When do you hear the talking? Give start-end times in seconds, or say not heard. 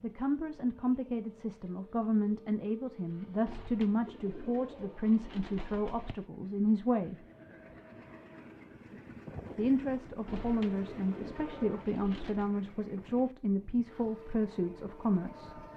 0.0-7.2, 9.6-15.7.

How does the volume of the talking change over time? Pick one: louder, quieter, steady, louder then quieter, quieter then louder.
steady.